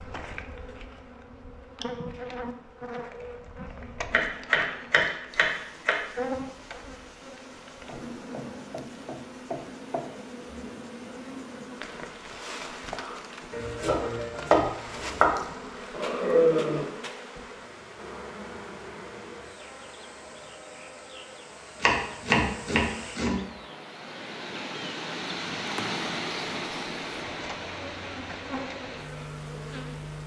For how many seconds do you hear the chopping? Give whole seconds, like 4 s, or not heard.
5 s.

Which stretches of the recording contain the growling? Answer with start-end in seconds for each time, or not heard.
15.9-16.9.